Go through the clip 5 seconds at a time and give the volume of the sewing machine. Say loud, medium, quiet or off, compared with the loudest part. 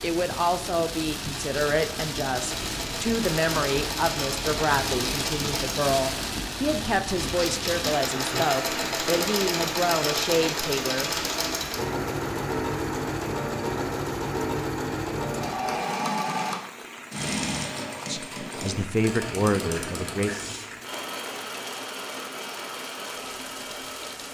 medium, loud, loud, loud, medium.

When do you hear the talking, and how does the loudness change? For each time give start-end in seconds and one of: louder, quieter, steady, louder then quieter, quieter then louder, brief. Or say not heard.
0.0-11.1 steady
18.1-20.3 brief.